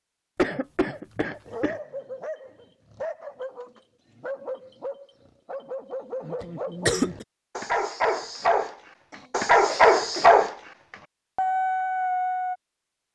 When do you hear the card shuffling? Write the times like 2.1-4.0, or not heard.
not heard.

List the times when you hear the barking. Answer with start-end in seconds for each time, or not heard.
1.4-10.6, 11.3-12.6.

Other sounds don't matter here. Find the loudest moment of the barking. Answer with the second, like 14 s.
10 s.